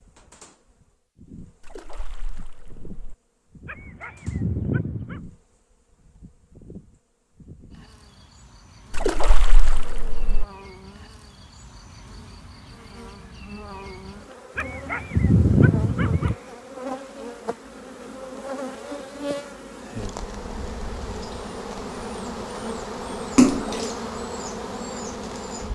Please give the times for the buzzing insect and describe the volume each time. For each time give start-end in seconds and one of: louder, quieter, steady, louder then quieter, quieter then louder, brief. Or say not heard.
0.0-25.7 louder.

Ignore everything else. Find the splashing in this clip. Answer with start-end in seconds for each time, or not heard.
1.6-3.1, 8.9-10.4, 23.4-23.9.